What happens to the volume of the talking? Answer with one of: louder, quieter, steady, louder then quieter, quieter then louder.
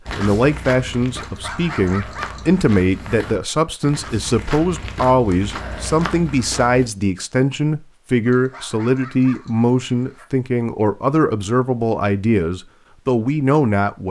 steady.